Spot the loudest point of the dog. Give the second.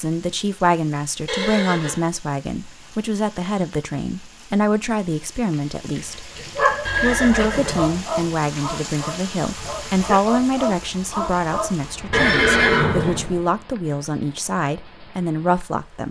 7 s.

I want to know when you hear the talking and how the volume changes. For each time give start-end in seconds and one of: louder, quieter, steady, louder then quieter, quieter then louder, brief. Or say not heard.
0.0-16.0 steady.